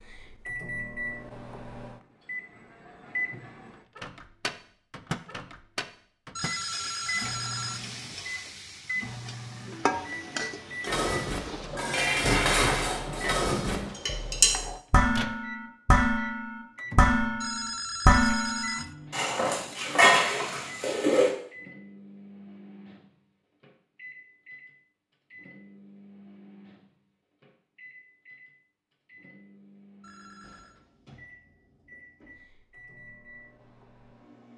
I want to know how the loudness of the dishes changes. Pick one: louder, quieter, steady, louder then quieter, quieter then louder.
steady.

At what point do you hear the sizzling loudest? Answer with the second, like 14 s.
10 s.